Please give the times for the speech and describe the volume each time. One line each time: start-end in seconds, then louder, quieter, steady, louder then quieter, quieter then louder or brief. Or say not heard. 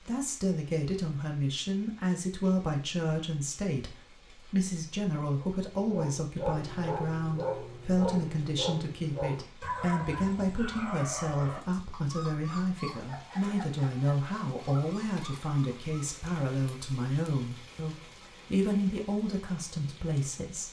0.0-20.6 steady.